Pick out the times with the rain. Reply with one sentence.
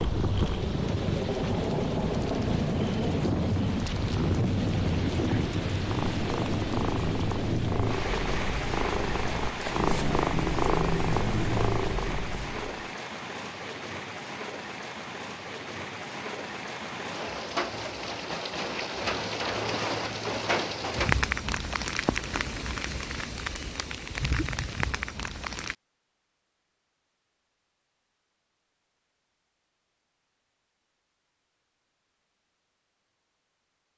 You can hear the rain from 0.0 to 25.8 s.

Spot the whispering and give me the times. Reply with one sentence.
You can't hear the whispering here.